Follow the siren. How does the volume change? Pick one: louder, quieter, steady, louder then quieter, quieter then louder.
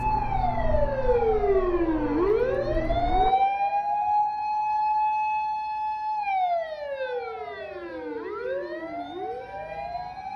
quieter.